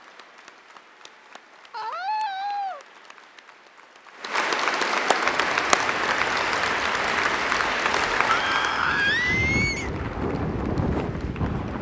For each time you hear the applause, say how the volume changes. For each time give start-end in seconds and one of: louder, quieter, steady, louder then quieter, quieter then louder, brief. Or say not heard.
0.0-11.7 louder then quieter.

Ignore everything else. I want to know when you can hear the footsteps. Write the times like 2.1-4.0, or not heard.
not heard.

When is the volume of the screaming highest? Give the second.
9 s.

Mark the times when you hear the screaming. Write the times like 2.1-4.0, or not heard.
1.7-2.8, 8.2-9.9.